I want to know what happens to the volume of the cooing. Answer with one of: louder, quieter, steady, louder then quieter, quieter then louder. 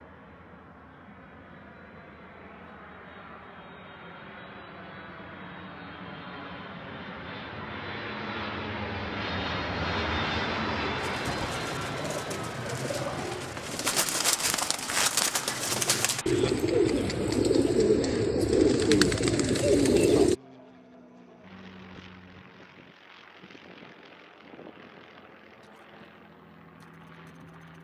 louder.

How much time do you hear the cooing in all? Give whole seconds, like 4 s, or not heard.
9 s.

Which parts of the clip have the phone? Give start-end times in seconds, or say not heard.
not heard.